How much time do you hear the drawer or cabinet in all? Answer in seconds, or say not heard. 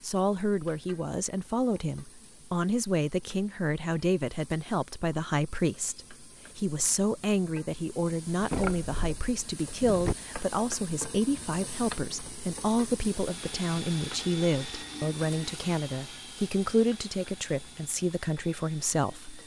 2 s.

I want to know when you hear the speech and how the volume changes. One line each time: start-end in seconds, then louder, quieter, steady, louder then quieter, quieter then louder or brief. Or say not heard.
0.0-19.4 steady.